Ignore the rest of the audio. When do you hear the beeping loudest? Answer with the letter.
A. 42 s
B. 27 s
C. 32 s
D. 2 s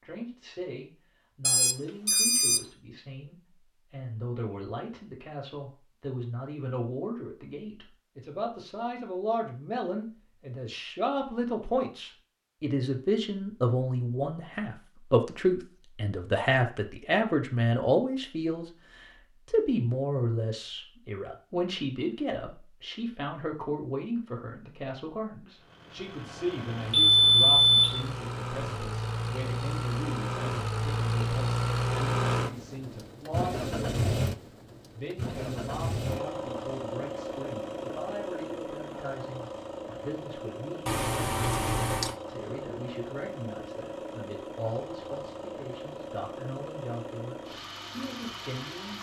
B.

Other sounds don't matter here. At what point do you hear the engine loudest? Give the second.
32 s.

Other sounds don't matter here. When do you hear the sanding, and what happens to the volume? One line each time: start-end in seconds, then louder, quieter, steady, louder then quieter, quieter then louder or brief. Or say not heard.
not heard.